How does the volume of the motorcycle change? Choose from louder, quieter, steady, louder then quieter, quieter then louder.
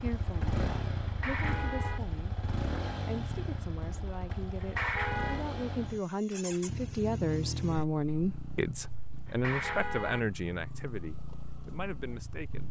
quieter.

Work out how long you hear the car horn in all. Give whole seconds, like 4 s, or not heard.
3 s.